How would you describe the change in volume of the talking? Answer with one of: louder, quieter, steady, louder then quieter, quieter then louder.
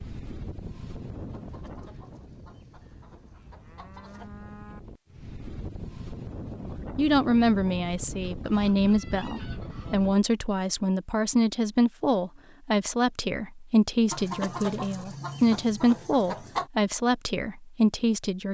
steady.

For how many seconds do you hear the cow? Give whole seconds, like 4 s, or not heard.
2 s.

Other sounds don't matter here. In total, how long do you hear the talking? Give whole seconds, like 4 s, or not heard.
12 s.